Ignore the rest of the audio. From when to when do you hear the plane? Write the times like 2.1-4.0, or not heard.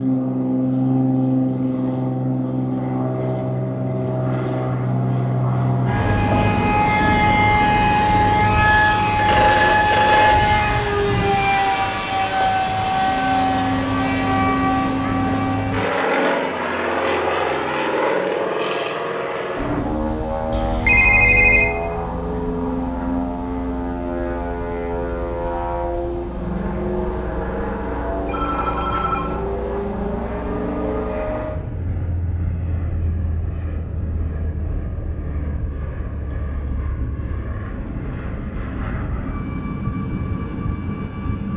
0.0-41.5.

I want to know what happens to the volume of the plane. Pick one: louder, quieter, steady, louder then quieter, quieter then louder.
quieter.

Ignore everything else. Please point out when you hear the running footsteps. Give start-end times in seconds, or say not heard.
not heard.